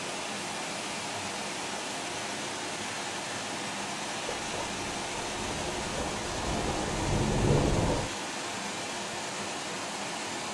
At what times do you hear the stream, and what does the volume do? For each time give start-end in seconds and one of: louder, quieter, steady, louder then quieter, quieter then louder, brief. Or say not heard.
0.0-10.4 steady.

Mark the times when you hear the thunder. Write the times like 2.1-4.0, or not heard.
4.3-8.1.